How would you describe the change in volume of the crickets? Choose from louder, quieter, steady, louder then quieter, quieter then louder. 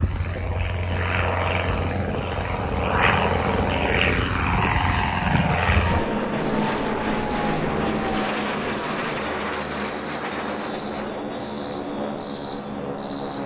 louder.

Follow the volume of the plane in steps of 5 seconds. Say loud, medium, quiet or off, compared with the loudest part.
loud, loud, medium.